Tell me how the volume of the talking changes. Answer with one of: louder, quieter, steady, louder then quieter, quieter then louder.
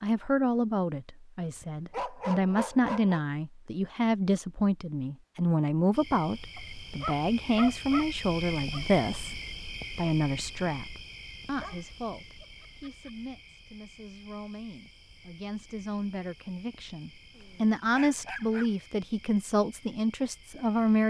quieter then louder.